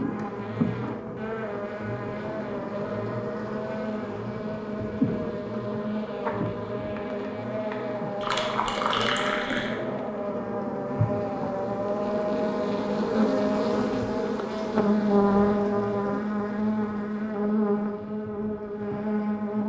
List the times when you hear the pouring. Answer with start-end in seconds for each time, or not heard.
8.2-9.8.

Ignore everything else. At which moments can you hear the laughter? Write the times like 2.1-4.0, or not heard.
not heard.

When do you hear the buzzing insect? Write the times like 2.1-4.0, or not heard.
0.0-19.6.